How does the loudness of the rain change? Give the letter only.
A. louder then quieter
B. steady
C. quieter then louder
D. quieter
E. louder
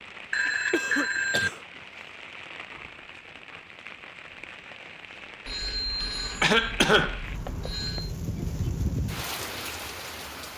E.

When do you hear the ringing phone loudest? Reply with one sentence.
The volume of the ringing phone peaks at 1 second.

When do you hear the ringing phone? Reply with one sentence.
The ringing phone can be heard from 0.3 to 1.5 s and from 5.5 to 8.1 s.